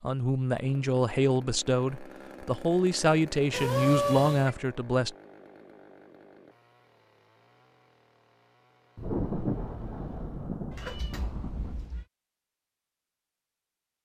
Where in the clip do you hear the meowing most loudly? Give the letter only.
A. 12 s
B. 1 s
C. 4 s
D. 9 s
C.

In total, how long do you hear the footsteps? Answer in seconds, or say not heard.
not heard.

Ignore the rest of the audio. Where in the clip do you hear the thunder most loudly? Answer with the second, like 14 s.
9 s.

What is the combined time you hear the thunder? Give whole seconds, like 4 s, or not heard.
3 s.